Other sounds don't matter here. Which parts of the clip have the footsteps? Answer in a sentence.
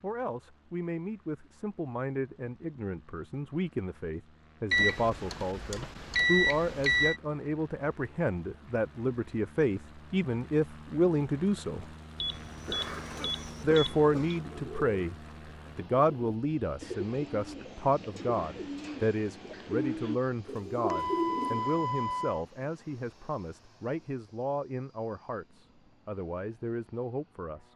The footsteps can't be heard in this clip.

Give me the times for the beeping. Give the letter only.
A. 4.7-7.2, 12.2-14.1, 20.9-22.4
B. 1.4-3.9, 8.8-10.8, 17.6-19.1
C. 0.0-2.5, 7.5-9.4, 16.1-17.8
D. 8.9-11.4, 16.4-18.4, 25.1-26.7
A.